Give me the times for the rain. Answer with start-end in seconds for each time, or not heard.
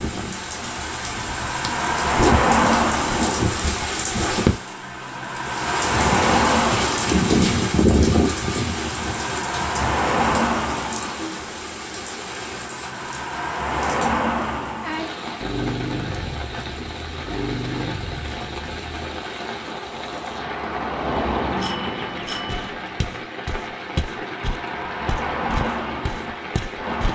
0.0-27.1.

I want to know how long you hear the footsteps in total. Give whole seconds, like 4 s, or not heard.
5 s.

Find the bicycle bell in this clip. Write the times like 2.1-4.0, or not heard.
21.1-22.8.